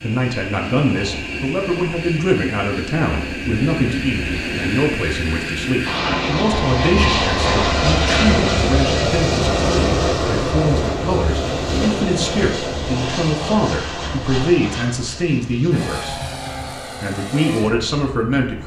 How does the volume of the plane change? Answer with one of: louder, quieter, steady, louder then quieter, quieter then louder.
louder then quieter.